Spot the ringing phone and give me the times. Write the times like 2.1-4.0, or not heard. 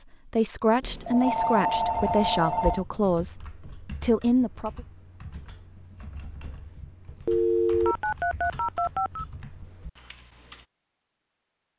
0.8-2.9, 7.2-9.2.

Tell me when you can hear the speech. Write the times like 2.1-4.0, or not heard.
0.2-4.8.